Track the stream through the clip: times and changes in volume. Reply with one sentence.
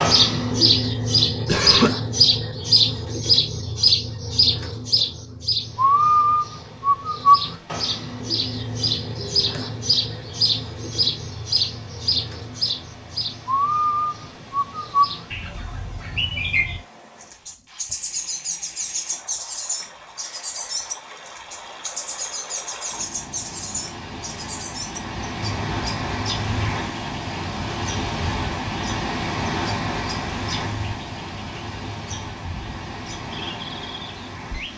The stream can be heard from 5.5 to 34.7 s, getting louder.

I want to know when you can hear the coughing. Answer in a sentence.
You can hear the coughing from 1.4 to 1.9 s.